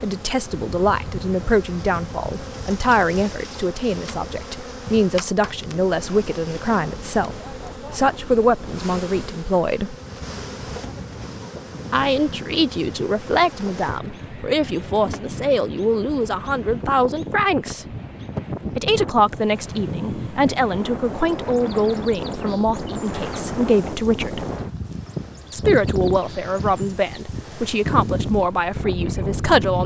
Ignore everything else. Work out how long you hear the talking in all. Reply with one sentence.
The talking can be heard for 26 seconds in total.